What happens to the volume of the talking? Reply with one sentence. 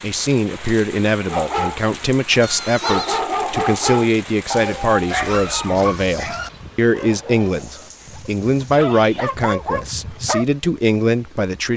The volume of the talking stays about the same.